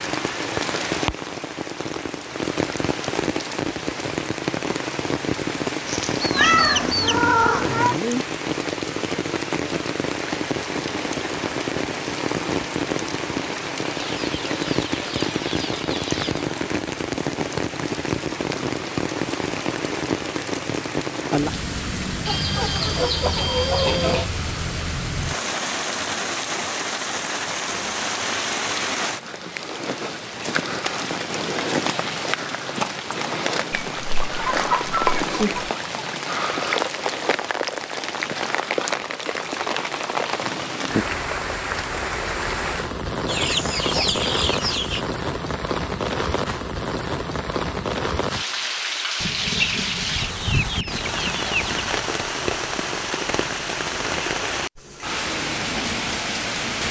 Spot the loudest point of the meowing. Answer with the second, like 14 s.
7 s.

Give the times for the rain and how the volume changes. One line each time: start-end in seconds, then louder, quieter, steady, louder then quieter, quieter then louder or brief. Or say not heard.
0.0-56.8 steady.